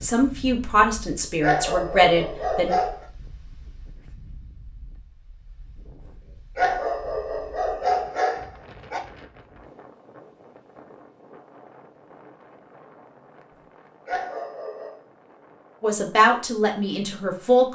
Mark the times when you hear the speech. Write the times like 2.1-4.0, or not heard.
0.0-2.7, 15.8-17.7.